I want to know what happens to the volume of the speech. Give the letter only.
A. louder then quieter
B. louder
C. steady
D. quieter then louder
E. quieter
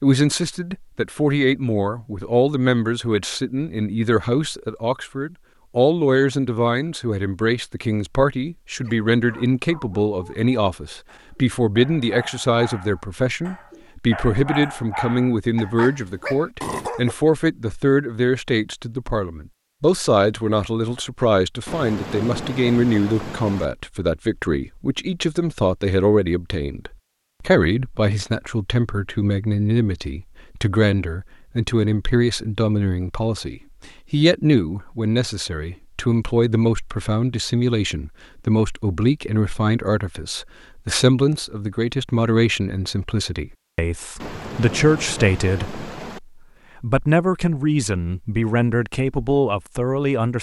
C.